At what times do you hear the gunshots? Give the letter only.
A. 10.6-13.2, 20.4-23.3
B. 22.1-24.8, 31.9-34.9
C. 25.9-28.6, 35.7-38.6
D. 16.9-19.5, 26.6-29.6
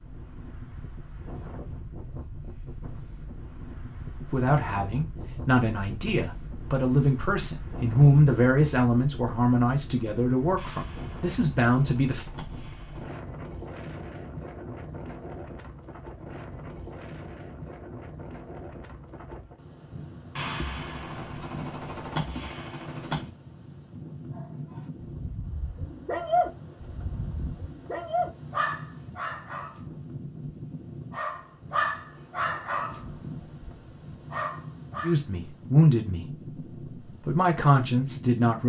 A.